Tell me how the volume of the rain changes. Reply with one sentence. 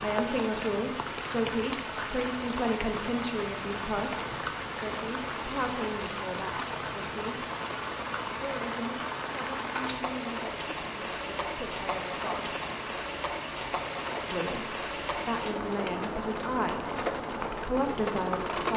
The volume of the rain stays about the same.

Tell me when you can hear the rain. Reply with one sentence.
The rain can be heard from 0.0 to 18.7 s.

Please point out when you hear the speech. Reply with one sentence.
You can hear the speech from 0.0 to 7.5 s, from 8.3 to 12.6 s and from 14.3 to 18.7 s.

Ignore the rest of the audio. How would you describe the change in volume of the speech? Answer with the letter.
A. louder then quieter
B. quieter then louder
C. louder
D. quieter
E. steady
B.